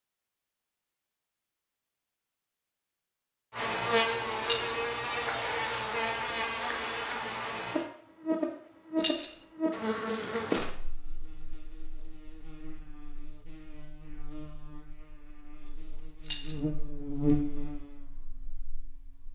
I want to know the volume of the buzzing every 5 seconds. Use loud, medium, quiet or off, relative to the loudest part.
loud, loud, medium, medium.